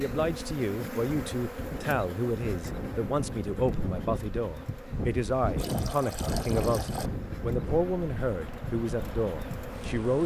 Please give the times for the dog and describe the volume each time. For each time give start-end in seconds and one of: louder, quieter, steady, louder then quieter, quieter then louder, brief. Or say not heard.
not heard.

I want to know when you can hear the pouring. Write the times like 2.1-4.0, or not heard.
5.5-7.1.